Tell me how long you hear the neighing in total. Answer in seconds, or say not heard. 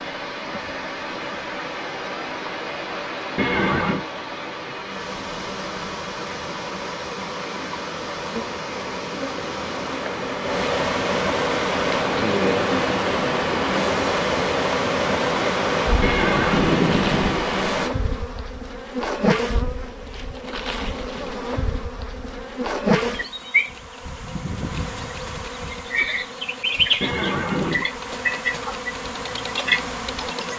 3 s.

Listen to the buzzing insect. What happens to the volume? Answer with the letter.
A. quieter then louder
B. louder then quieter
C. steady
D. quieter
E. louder
E.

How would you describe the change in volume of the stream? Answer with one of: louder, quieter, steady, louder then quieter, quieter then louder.
louder.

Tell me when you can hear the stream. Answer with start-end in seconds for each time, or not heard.
0.0-17.9.